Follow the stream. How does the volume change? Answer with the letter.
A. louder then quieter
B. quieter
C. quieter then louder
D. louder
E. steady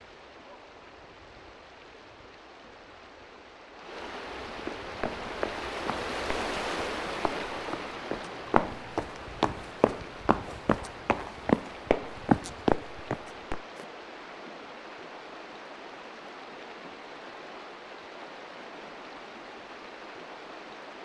A.